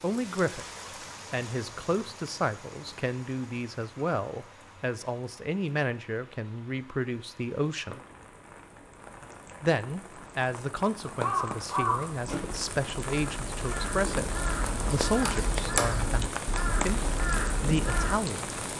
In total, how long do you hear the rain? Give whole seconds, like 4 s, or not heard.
19 s.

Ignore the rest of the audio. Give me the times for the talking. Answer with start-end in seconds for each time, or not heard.
0.0-0.7, 1.3-8.0, 9.6-16.2, 16.9-18.6.